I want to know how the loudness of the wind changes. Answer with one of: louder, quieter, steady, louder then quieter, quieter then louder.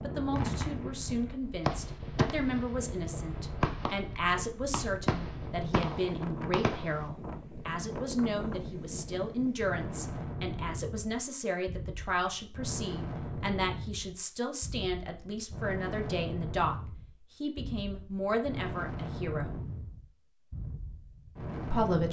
steady.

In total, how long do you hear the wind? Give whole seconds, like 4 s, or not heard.
22 s.